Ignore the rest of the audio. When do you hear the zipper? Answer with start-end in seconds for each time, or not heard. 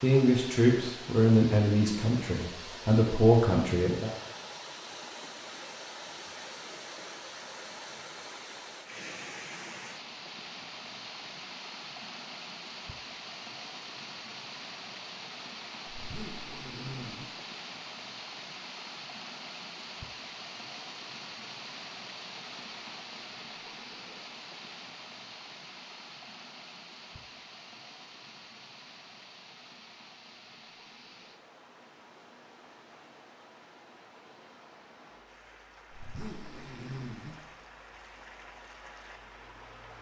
15.9-17.2, 35.9-37.4.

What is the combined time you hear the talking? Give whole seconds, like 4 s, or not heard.
4 s.